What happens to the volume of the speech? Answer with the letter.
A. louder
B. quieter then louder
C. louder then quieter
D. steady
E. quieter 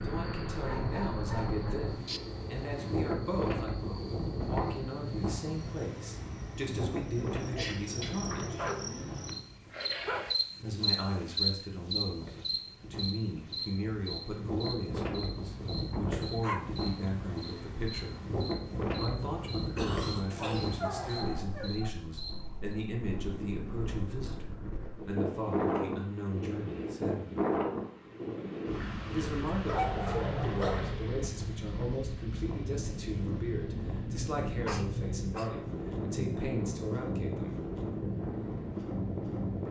D.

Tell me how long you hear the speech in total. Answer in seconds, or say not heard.
33 s.